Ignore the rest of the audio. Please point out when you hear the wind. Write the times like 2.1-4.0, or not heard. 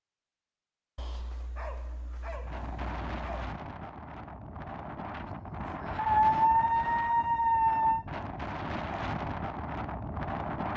2.3-10.7.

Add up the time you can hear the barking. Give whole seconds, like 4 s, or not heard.
5 s.